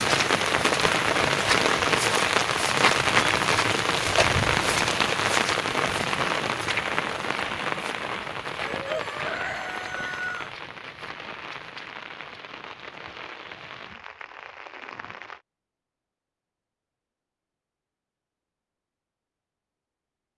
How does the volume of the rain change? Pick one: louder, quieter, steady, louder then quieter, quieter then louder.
quieter.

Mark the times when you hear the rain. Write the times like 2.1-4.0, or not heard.
0.0-15.4.